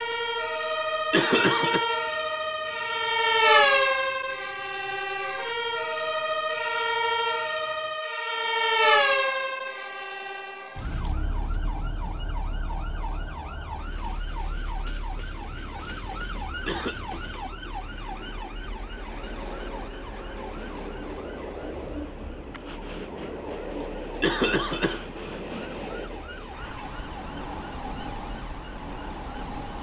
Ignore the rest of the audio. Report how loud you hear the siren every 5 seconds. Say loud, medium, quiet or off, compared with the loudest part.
loud, loud, quiet, quiet, quiet, quiet.